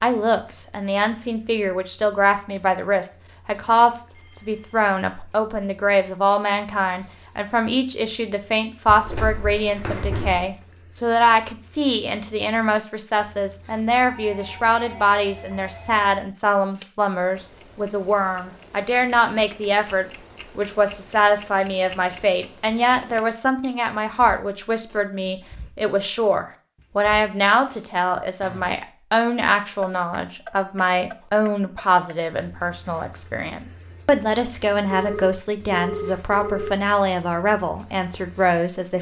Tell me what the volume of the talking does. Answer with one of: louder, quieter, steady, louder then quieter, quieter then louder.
steady.